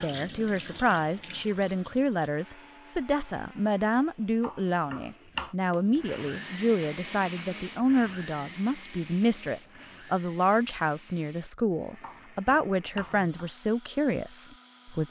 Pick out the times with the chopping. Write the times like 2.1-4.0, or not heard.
4.4-5.5, 12.0-13.5.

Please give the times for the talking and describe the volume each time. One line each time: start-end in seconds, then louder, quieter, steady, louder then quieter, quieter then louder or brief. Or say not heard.
0.0-15.0 steady.